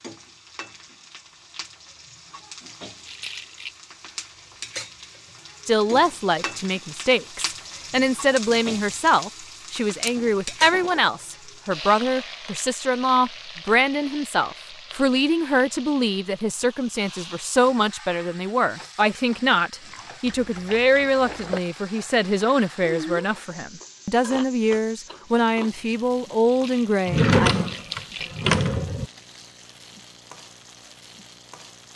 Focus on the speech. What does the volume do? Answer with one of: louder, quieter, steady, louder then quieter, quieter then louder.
steady.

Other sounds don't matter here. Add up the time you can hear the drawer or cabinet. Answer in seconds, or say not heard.
3 s.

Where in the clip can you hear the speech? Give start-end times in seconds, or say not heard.
5.7-27.6.